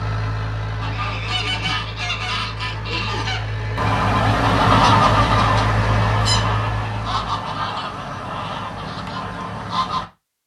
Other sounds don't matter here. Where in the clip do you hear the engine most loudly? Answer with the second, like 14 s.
6 s.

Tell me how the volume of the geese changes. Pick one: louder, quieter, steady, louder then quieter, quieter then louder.
louder then quieter.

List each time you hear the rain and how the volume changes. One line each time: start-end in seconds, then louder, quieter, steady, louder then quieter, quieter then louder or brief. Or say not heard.
not heard.